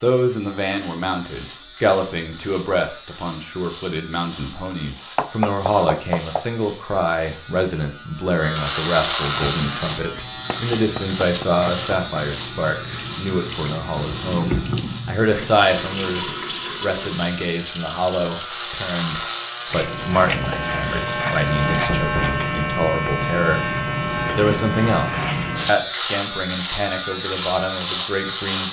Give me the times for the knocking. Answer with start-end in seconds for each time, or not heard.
5.2-6.5, 10.5-12.2, 21.7-22.4.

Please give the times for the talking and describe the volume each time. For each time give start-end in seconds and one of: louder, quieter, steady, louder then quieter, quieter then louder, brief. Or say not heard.
0.0-28.6 steady.